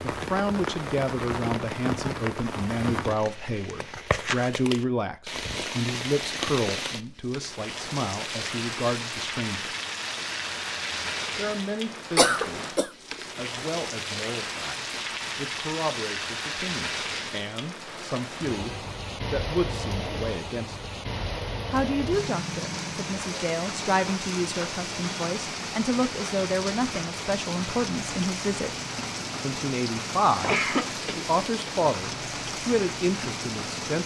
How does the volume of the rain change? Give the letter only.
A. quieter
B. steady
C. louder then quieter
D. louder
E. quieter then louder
B.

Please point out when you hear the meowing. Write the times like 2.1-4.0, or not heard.
not heard.